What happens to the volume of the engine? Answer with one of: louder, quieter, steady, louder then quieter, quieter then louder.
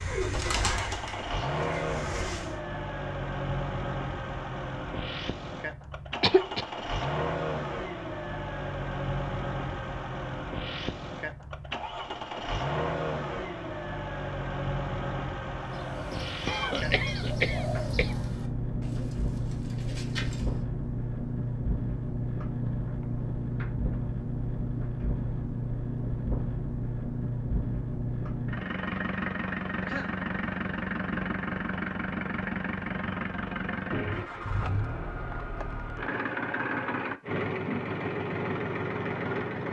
steady.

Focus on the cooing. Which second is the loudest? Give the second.
1 s.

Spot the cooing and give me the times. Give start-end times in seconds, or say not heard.
0.0-2.6, 15.6-20.6.